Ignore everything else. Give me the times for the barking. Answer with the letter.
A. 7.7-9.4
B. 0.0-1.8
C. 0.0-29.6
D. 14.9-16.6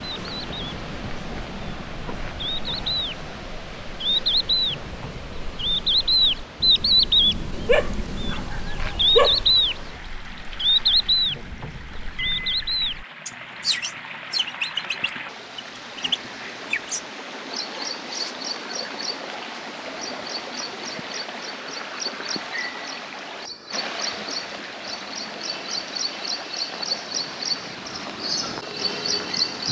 A.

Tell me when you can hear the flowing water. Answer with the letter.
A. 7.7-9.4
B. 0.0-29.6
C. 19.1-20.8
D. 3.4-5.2
B.